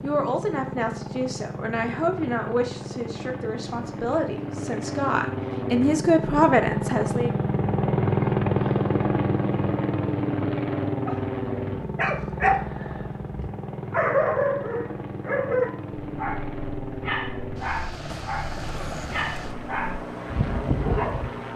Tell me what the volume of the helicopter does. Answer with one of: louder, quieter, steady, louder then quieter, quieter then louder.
louder then quieter.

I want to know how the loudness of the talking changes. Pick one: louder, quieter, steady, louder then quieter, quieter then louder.
louder.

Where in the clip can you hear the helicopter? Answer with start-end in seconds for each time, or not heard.
0.0-21.5.